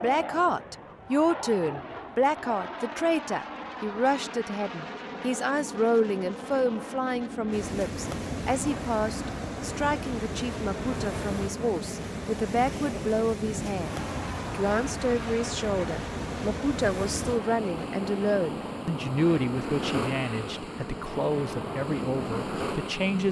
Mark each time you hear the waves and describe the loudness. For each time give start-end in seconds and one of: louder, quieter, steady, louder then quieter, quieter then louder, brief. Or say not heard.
7.5-23.2 steady.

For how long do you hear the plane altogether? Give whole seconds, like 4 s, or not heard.
23 s.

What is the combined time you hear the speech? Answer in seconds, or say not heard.
23 s.